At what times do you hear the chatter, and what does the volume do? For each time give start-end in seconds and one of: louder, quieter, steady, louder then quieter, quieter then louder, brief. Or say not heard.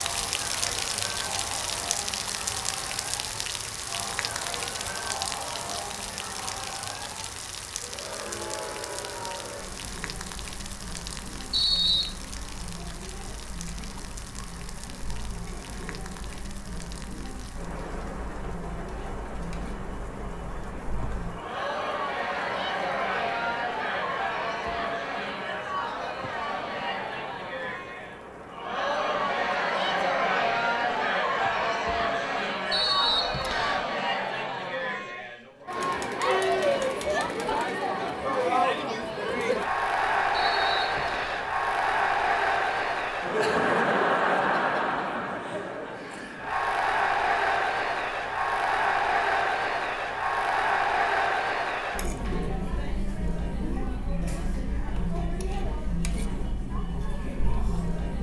0.0-58.1 louder.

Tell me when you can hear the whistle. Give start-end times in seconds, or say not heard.
11.5-12.1, 32.7-33.9, 40.3-41.5.